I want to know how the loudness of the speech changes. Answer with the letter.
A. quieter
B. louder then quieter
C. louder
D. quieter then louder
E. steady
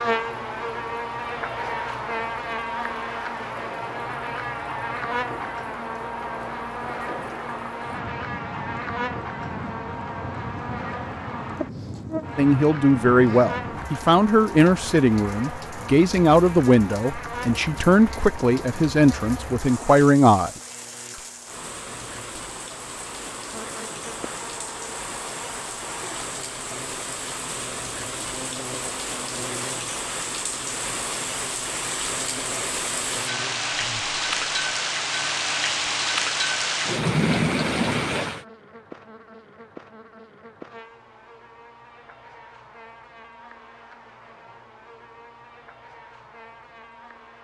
E.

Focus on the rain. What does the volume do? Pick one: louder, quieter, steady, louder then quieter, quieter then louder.
louder.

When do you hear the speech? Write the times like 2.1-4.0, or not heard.
12.3-20.5.